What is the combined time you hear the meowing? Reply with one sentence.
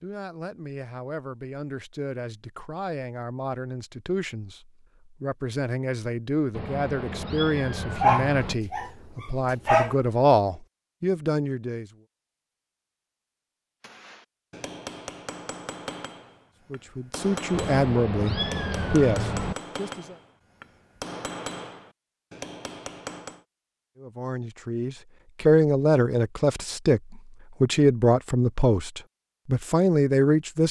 You can hear the meowing for 4 seconds altogether.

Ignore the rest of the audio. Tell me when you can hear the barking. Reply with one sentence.
You can hear the barking from 8.0 to 9.9 s.